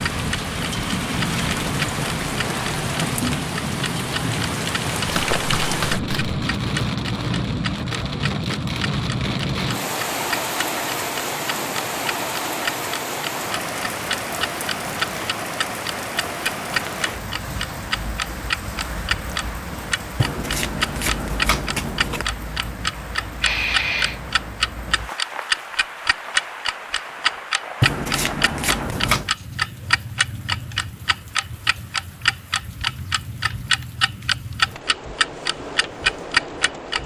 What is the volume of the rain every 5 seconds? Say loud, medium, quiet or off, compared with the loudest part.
loud, loud, loud, medium, medium, medium, quiet, medium.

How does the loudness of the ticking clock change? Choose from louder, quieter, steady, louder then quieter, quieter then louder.
louder.